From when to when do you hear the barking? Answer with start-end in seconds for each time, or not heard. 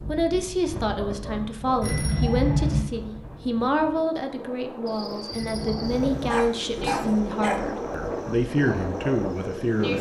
0.8-1.6, 6.2-7.7.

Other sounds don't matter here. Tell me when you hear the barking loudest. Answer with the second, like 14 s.
7 s.